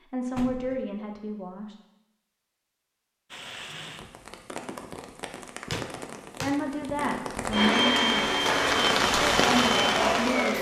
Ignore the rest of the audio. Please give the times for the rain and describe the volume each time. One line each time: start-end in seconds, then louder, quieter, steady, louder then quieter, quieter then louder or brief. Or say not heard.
3.3-10.5 louder.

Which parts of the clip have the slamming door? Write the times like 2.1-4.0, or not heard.
0.3-0.8, 5.7-6.6.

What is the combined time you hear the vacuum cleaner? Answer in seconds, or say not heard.
3 s.